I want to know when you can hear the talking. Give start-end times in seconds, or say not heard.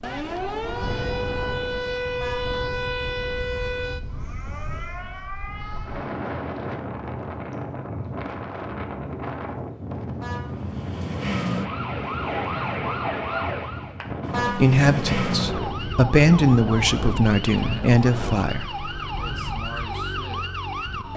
14.6-18.9.